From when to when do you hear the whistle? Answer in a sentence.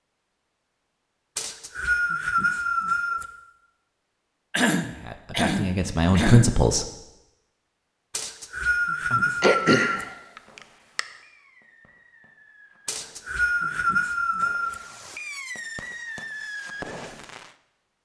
You can hear the whistle from 1.4 to 3.2 s, from 8.1 to 10.1 s and from 12.8 to 14.8 s.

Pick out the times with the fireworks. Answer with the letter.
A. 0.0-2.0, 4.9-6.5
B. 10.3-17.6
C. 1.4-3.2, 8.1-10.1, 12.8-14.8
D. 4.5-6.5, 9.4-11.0
B.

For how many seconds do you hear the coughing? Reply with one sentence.
The coughing can be heard for 4 seconds in total.